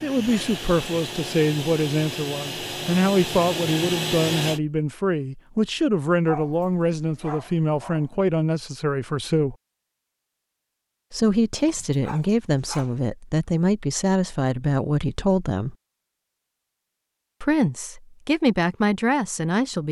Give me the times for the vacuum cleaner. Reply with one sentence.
You can hear the vacuum cleaner from 0.0 to 4.6 s.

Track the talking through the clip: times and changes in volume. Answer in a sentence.
The talking can be heard from 0.0 to 9.6 s, at a steady volume; from 11.1 to 15.8 s, at a steady volume; and briefly from 17.4 to 19.8 s.